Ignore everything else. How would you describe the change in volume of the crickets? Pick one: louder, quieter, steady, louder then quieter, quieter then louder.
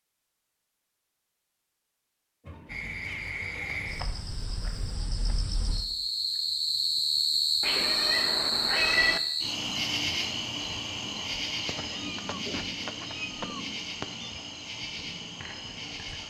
louder then quieter.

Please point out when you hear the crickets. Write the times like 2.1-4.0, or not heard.
2.6-16.2.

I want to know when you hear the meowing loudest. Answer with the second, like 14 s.
9 s.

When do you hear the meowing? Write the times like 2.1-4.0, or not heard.
2.4-3.3, 7.6-9.2, 11.7-14.4.